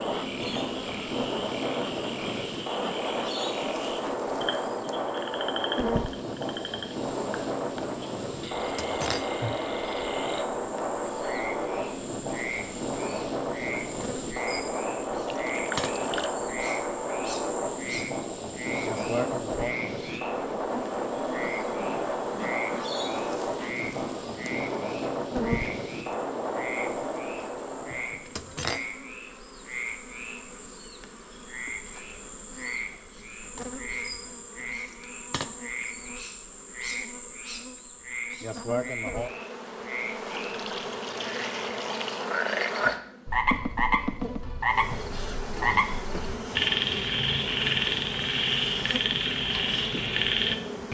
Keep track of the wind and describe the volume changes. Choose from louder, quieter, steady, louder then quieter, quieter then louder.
steady.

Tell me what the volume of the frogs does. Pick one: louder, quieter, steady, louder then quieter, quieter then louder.
louder.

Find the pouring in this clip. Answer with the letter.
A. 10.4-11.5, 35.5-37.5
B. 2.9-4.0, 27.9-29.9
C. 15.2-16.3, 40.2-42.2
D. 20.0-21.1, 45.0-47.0
C.